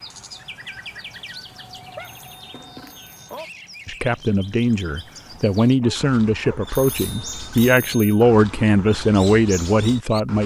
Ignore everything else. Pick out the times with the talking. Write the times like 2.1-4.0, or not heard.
3.9-10.4.